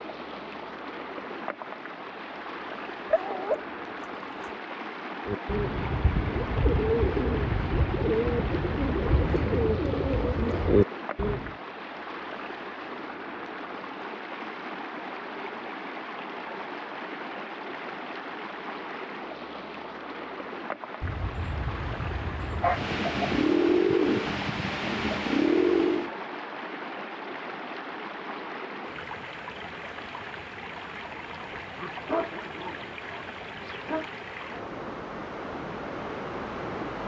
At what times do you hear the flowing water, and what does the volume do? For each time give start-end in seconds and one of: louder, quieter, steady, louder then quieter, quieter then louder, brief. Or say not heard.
0.0-37.0 steady.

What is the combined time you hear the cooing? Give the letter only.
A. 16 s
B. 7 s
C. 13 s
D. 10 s
D.